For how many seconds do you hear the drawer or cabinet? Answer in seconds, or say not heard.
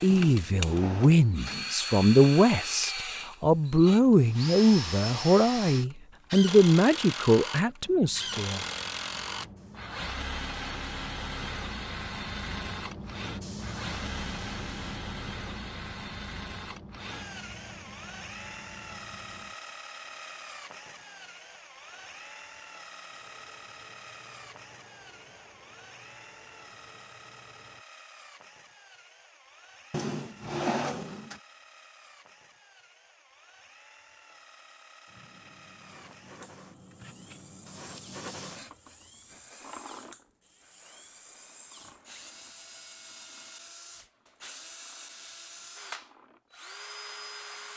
3 s.